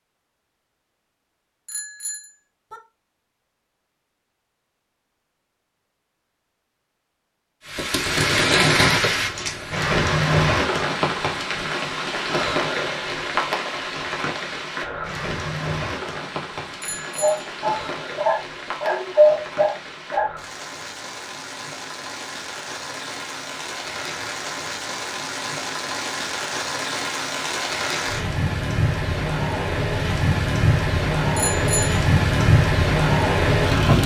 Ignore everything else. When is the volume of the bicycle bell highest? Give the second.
32 s.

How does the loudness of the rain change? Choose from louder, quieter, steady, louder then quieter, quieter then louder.
quieter then louder.